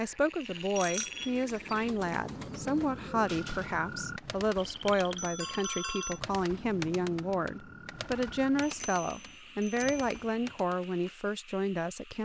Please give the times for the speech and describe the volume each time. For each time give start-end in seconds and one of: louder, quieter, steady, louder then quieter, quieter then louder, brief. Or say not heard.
0.0-12.1 steady.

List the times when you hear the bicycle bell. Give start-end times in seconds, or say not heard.
0.8-2.4, 4.8-6.2, 8.6-10.2.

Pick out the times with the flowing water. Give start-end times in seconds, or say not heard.
not heard.